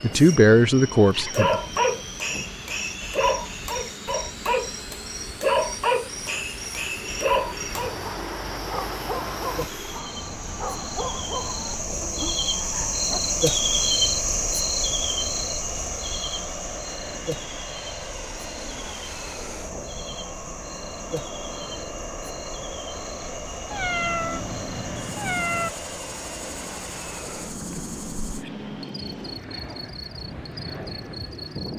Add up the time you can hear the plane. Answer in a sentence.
The plane can be heard for 32 seconds in total.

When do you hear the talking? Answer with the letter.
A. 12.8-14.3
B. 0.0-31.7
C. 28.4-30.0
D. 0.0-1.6
D.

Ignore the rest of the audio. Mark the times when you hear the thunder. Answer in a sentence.
The thunder can't be heard in this clip.